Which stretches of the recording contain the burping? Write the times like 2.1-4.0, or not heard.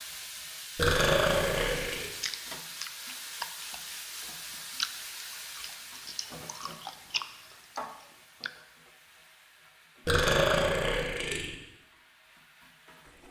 0.8-2.1, 10.1-11.6.